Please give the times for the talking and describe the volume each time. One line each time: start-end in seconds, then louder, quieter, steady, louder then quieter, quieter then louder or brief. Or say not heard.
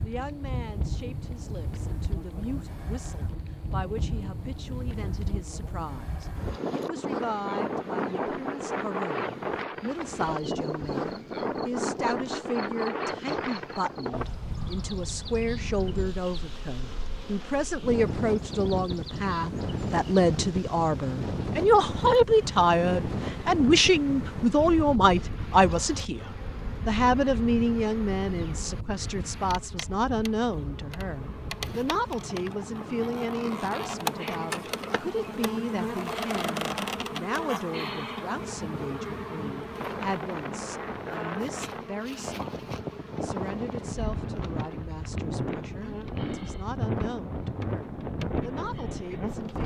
0.0-49.6 louder then quieter.